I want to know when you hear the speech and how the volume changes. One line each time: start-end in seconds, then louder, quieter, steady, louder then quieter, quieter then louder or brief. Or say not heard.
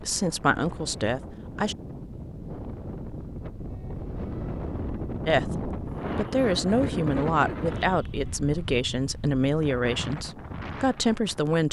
0.0-1.8 brief
5.2-11.6 steady.